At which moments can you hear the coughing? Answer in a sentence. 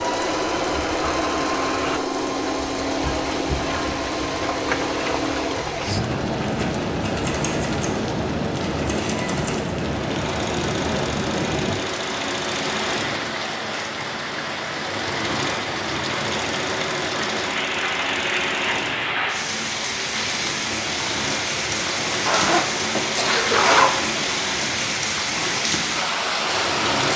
You can hear the coughing from 23.1 to 23.7 s.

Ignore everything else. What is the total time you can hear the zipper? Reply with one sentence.
The zipper can be heard for 2 seconds in total.